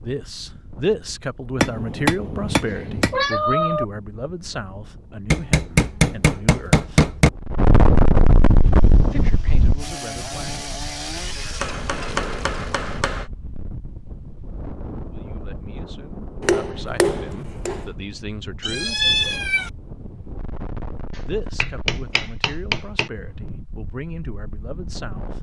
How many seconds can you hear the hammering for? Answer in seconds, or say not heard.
8 s.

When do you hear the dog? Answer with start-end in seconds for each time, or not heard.
not heard.